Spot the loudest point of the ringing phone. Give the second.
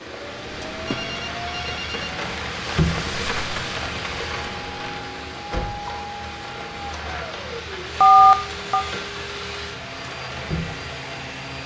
8 s.